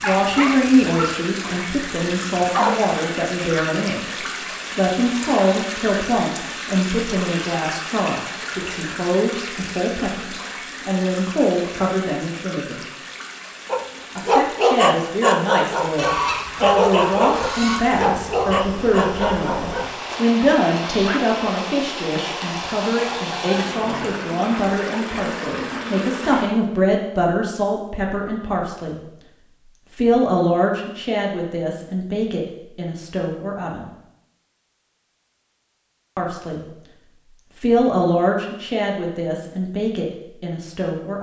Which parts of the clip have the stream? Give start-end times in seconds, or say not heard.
0.0-26.5.